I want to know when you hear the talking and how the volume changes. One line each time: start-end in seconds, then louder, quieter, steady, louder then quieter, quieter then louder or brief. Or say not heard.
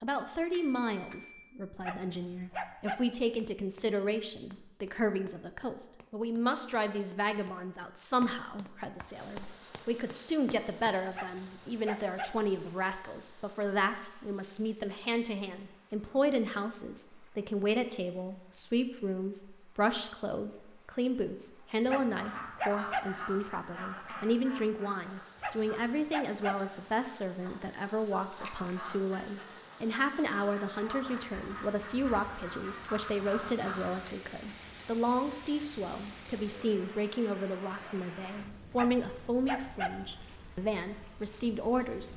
0.0-42.1 steady.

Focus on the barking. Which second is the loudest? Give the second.
23 s.